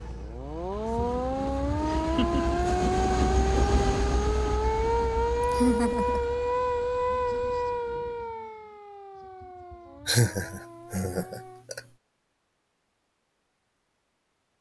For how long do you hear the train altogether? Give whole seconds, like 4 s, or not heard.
8 s.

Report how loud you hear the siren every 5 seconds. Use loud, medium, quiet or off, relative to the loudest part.
loud, loud, quiet.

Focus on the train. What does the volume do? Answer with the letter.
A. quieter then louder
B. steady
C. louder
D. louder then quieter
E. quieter
D.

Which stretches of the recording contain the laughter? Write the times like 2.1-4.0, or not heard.
1.9-2.6, 5.4-6.2, 10.1-11.8.